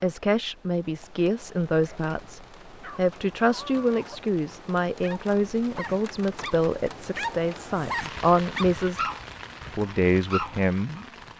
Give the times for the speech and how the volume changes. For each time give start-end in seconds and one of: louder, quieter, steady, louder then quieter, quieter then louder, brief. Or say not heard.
0.0-9.0 steady
9.7-11.1 brief.